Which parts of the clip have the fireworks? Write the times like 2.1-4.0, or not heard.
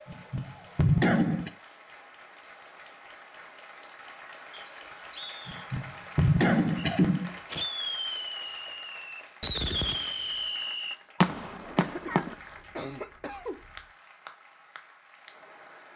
6.8-12.3.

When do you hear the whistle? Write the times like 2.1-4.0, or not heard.
4.5-5.7.